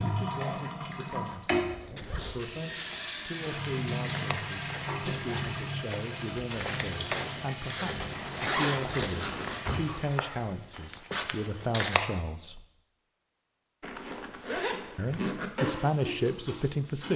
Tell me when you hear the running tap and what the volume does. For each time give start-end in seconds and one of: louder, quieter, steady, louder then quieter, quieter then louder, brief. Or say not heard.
0.0-10.8 quieter
15.3-17.1 brief.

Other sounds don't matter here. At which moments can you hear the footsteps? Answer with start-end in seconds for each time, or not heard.
1.2-12.1.